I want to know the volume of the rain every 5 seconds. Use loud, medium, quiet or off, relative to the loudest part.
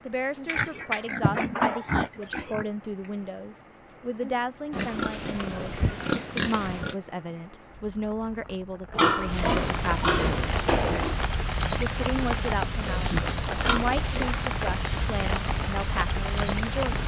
quiet, medium, loud, loud.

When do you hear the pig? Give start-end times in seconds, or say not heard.
0.5-2.7, 4.7-7.0, 8.9-11.2, 12.8-14.3.